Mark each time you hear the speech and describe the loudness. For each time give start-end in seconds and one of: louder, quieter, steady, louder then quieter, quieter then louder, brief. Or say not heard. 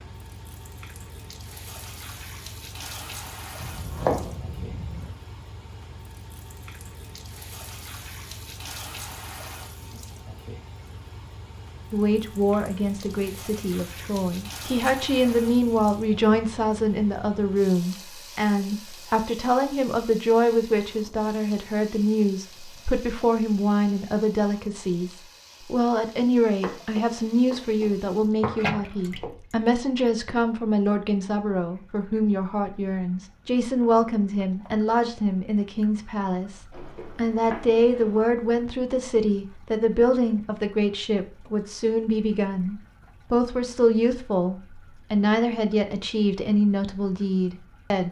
11.9-48.0 steady.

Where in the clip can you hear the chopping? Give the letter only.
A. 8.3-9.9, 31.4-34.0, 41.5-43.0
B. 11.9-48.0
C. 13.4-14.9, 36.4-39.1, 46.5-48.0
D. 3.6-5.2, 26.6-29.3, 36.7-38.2
D.